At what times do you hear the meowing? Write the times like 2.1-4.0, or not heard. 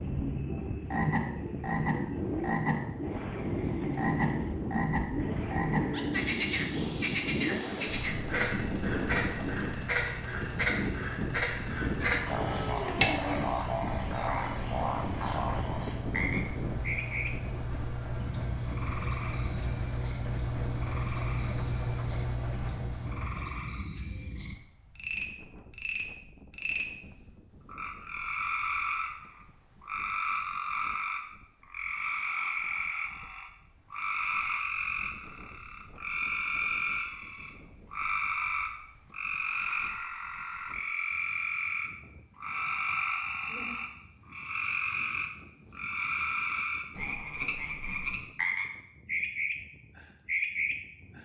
12.0-13.6.